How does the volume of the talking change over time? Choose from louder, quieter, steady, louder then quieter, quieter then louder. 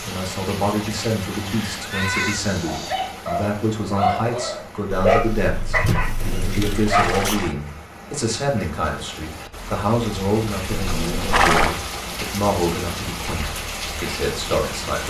steady.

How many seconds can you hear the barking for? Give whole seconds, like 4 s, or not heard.
5 s.